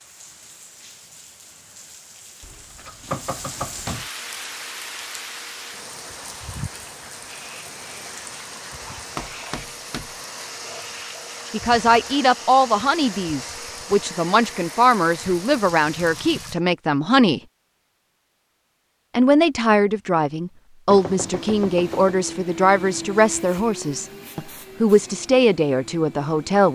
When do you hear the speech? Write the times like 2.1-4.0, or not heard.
11.5-17.4, 19.1-26.7.